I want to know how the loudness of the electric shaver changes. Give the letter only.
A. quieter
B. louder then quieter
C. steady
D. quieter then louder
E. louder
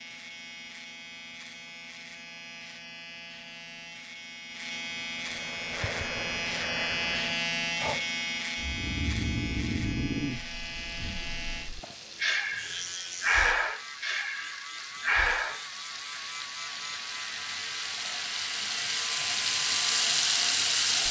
B.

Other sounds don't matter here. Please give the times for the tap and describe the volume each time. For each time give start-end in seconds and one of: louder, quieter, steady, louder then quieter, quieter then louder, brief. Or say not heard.
10.4-21.0 louder.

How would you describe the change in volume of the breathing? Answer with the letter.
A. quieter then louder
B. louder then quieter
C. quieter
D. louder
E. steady
D.